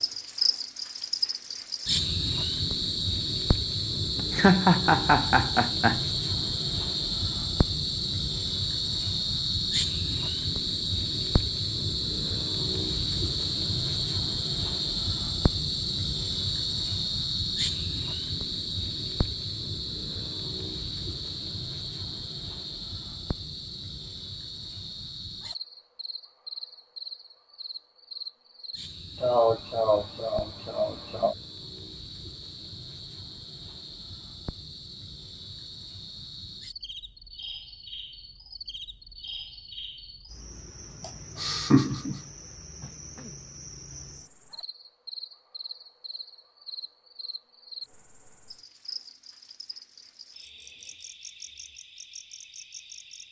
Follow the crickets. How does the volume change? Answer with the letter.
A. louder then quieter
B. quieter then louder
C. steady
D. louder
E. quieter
E.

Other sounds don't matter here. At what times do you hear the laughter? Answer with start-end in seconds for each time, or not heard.
4.2-6.0, 29.2-31.4, 41.0-42.2.